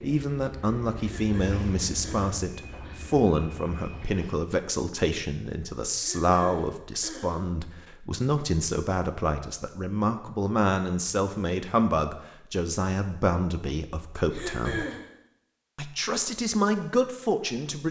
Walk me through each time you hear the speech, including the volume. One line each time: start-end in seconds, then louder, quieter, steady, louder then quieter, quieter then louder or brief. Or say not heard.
0.0-14.8 steady
15.8-17.8 brief.